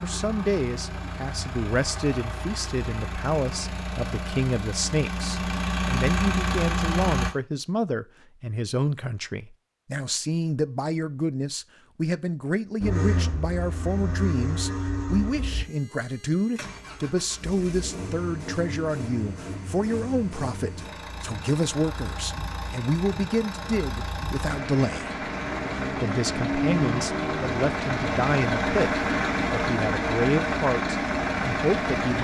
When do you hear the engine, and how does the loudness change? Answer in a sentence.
The engine can be heard from 0.0 to 7.3 s, getting louder; and from 12.8 to 32.2 s, getting louder.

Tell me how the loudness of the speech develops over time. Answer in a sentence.
The volume of the speech stays about the same.